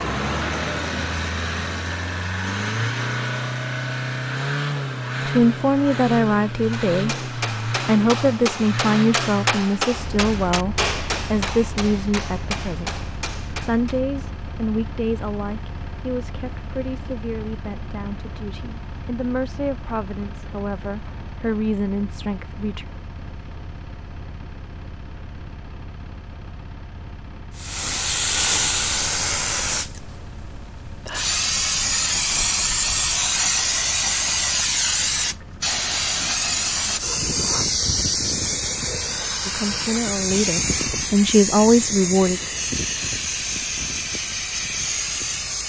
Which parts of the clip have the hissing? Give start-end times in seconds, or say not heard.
27.6-45.6.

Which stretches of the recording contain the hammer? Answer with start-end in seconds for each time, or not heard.
6.7-14.0.